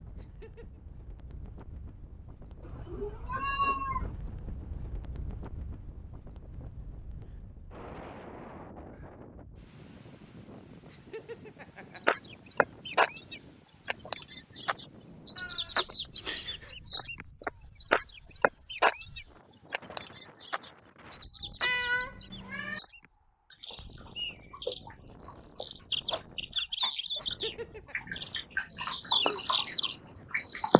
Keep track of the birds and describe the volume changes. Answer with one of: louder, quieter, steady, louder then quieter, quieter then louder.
quieter then louder.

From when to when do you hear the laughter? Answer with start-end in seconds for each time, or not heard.
0.1-0.8, 10.8-12.2, 27.1-27.9.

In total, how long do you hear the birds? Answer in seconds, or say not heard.
19 s.